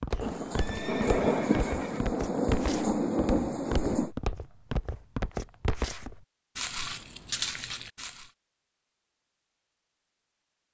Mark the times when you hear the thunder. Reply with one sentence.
The thunder can be heard from 0.2 to 4.1 s.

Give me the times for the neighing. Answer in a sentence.
The neighing can be heard from 0.1 to 2.0 s.